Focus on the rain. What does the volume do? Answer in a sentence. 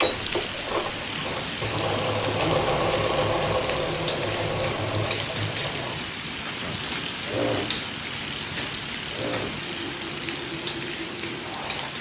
The volume of the rain stays about the same.